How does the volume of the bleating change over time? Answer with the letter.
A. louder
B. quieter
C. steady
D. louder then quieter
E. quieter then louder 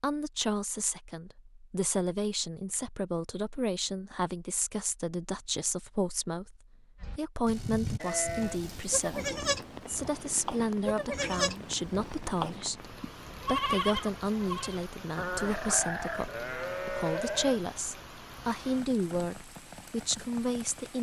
C.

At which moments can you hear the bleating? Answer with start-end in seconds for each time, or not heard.
7.0-17.6.